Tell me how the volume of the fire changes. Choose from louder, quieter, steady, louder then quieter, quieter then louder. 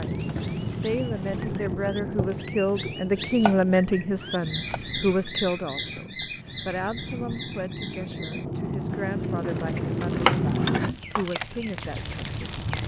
quieter then louder.